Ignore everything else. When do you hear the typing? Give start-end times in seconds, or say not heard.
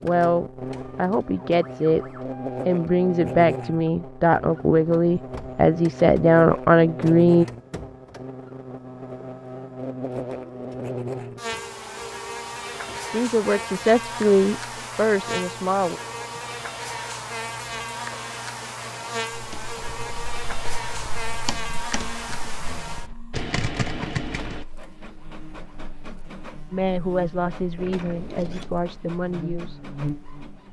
19.3-24.6.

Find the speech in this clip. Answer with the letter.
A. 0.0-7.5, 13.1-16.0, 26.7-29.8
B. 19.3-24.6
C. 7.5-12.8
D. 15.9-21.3
A.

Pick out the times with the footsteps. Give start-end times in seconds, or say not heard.
not heard.